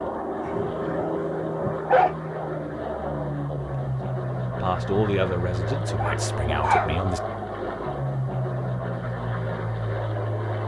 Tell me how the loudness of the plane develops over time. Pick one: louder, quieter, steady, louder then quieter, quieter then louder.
steady.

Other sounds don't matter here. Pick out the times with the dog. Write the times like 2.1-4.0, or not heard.
0.3-2.1, 6.0-6.9.